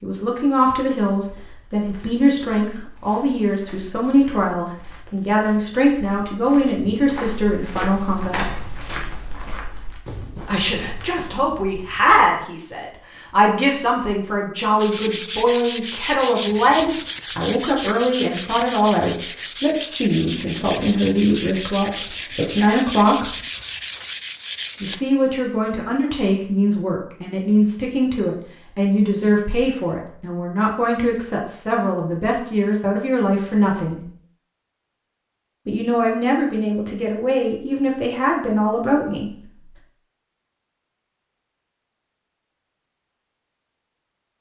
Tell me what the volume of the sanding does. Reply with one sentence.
The loudness of the sanding stays about the same.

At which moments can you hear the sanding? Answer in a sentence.
The sanding can be heard from 14.8 to 25.0 s.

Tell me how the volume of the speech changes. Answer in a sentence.
The loudness of the speech stays about the same.